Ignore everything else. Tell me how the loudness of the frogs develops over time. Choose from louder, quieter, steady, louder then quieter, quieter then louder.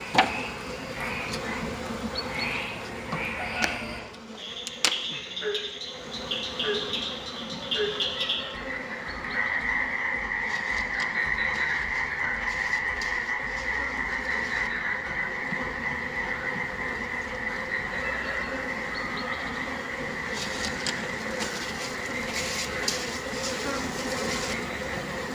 louder then quieter.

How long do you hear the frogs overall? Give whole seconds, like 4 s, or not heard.
25 s.